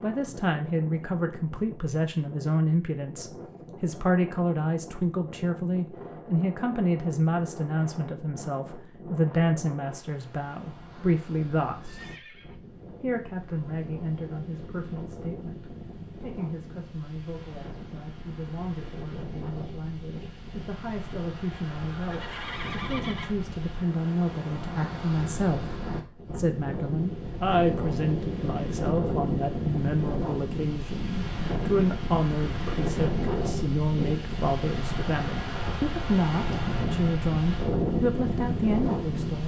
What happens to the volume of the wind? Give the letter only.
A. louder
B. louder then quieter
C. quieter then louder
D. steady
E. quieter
A.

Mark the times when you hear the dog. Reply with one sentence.
You can't hear the dog here.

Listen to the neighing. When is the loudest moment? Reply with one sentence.
The volume of the neighing peaks at 23 seconds.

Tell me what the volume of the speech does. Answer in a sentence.
The loudness of the speech goes down, then up.